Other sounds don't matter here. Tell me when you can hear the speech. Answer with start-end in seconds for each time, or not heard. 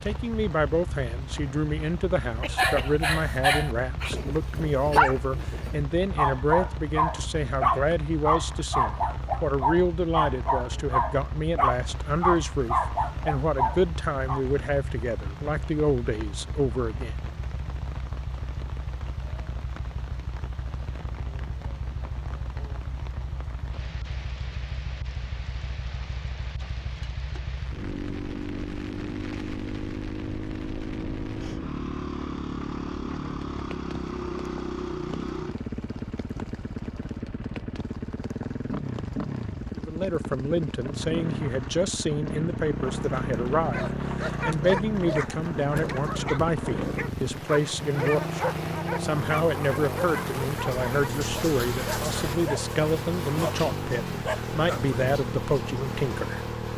0.0-17.2, 39.8-56.5.